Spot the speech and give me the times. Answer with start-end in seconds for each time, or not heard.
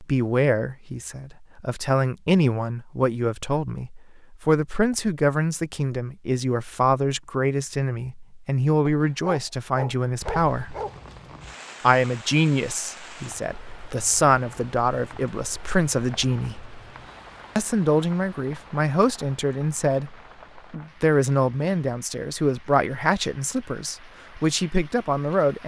0.0-10.8, 11.8-16.6, 17.6-25.6.